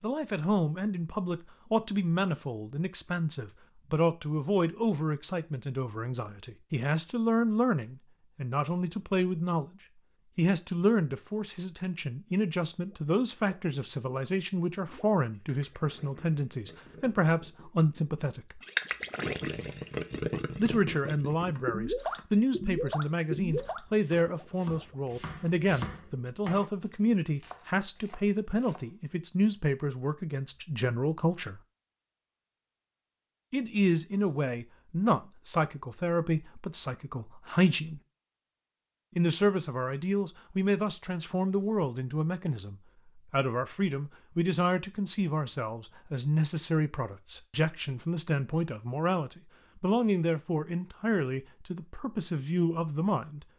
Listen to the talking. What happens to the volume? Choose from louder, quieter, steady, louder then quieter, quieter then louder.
steady.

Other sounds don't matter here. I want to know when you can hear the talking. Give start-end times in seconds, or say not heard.
0.0-9.8, 10.3-18.6, 20.6-31.6, 33.5-38.0, 39.1-53.5.